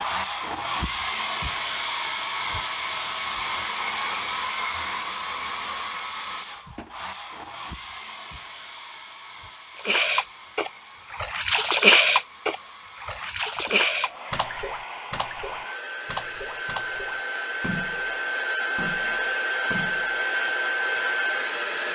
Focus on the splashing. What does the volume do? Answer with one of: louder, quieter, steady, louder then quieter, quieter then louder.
quieter.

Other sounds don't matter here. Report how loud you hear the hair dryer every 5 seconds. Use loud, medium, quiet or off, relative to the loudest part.
loud, medium, quiet, loud, loud.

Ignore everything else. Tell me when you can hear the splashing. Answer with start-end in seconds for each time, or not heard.
9.8-20.2.